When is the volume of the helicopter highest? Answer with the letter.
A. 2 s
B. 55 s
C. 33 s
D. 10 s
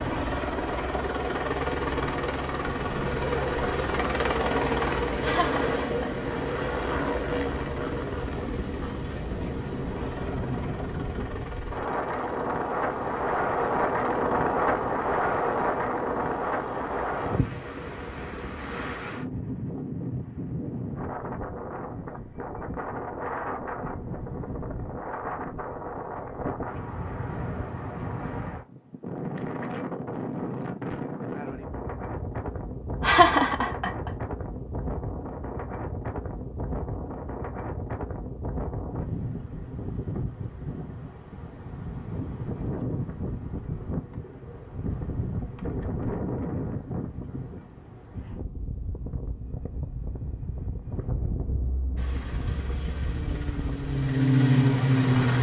B.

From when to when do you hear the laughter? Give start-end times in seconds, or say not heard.
5.2-6.0, 33.0-34.1.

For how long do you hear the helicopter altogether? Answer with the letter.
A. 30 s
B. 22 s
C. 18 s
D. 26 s
B.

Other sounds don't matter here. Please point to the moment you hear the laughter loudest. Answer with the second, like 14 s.
33 s.